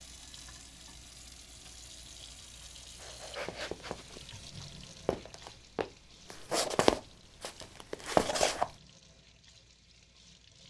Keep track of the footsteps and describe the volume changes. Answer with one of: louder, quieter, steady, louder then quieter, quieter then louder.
louder.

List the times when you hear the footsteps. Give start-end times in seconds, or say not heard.
3.0-8.7.